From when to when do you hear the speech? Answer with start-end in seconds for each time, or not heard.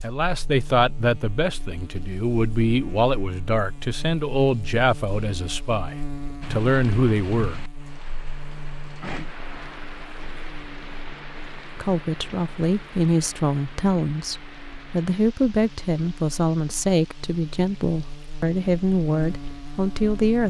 0.0-7.6, 11.8-20.4.